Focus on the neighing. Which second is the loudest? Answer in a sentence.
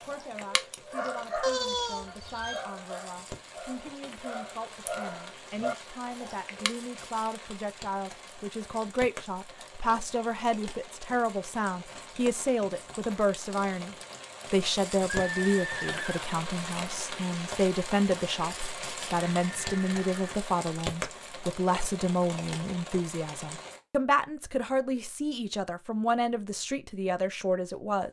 The volume of the neighing peaks at 2 seconds.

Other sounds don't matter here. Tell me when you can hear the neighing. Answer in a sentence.
The neighing can be heard from 1.4 to 2.6 s, from 15.1 to 16.2 s and from 19.3 to 20.4 s.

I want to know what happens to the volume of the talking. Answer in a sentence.
The loudness of the talking goes up.